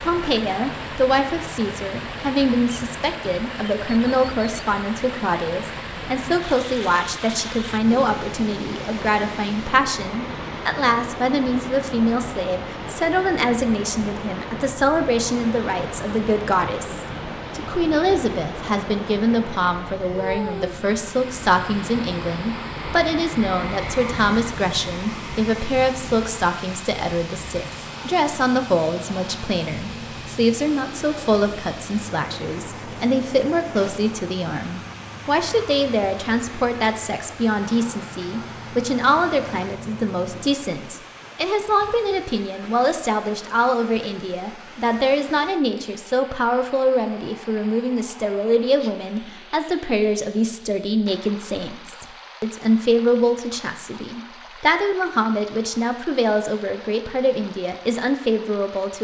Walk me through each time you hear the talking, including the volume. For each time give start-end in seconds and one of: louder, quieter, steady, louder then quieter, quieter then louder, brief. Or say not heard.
0.0-58.9 steady.